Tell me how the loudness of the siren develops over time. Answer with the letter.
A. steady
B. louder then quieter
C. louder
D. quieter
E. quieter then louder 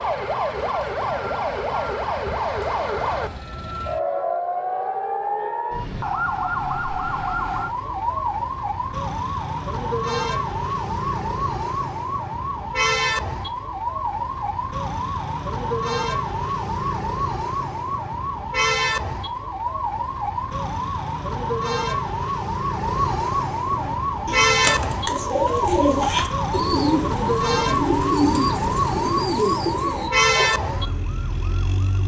A.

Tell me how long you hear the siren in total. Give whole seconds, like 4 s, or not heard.
32 s.